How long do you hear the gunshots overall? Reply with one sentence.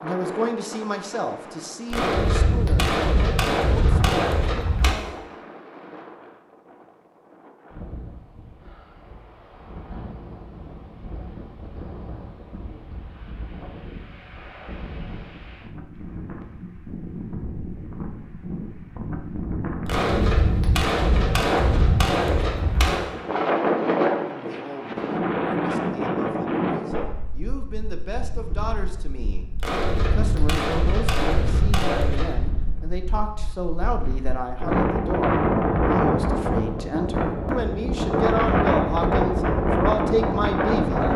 The gunshots can be heard for 9 seconds in total.